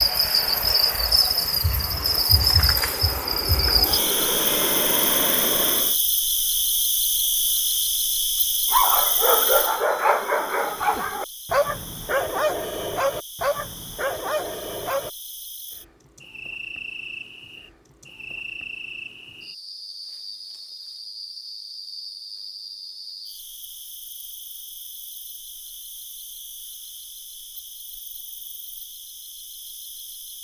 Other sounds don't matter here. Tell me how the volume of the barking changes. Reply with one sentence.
The loudness of the barking goes down.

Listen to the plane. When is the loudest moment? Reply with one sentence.
The volume of the plane peaks at 5 seconds.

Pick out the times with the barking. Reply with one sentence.
You can hear the barking from 8.7 to 15.1 s.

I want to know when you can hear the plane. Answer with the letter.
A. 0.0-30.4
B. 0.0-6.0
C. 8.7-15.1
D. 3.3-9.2
B.